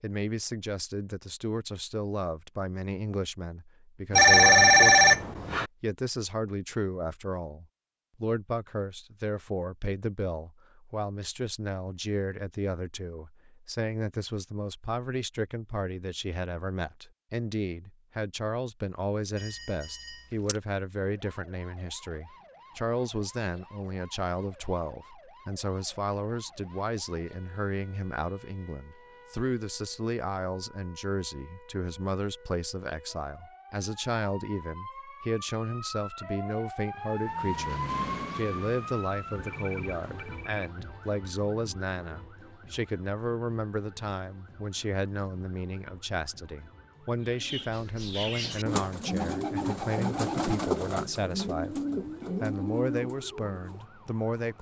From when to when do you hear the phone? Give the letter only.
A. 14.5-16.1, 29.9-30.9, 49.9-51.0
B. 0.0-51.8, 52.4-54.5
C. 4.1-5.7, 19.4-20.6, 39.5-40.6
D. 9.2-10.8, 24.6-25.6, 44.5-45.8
C.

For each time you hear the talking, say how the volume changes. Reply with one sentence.
You can hear the talking from 0.0 to 51.8 s, at a steady volume; and briefly from 52.4 to 54.5 s.